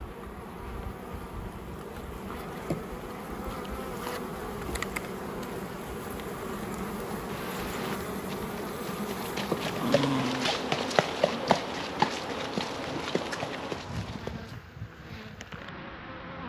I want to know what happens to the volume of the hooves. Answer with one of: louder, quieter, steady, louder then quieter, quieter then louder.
louder then quieter.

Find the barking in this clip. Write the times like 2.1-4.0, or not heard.
9.8-10.6.